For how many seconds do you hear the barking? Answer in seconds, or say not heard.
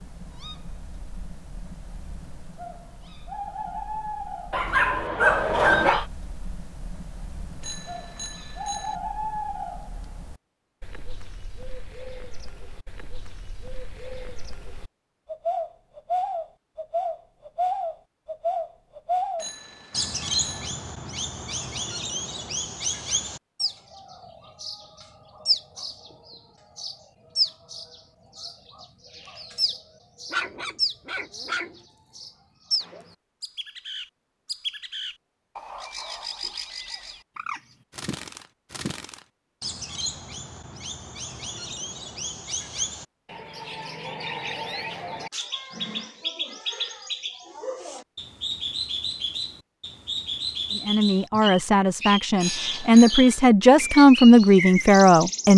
3 s.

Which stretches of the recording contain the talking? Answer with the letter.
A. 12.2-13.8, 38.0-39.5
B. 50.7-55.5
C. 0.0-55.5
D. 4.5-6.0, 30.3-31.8
B.